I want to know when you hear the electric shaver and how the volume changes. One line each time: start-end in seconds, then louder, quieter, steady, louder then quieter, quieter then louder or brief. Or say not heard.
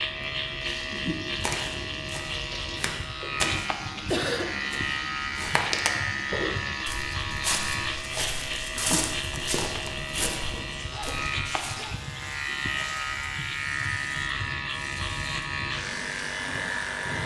0.0-17.2 steady.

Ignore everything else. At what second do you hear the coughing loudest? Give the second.
4 s.